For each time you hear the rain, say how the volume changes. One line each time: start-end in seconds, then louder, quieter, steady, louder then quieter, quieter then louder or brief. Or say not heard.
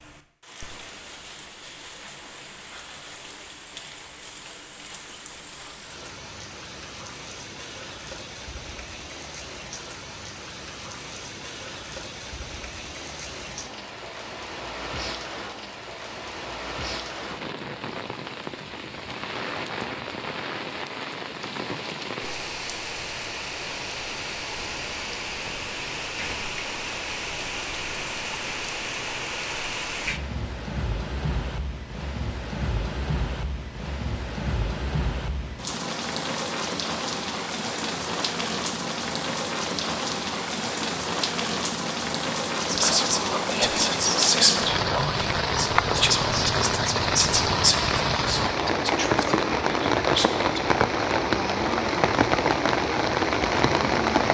0.0-54.2 louder.